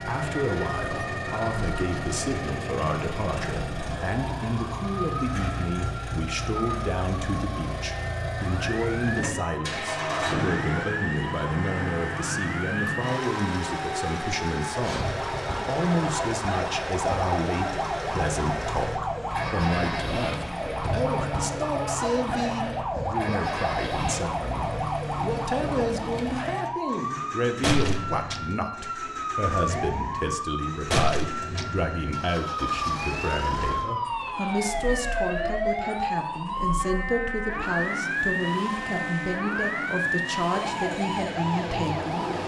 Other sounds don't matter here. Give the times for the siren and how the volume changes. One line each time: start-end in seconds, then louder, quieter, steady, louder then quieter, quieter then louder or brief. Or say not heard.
0.0-42.4 louder.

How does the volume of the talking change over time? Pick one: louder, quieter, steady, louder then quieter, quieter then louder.
steady.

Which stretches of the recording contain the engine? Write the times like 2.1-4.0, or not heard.
0.0-42.4.